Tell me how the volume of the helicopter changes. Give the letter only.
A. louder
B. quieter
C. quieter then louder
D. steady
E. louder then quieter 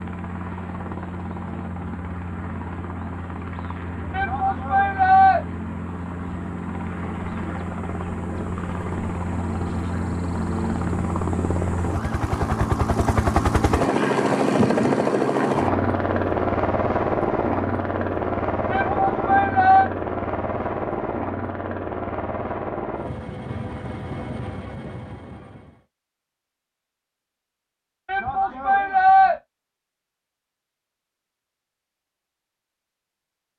E.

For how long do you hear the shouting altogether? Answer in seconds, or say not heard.
4 s.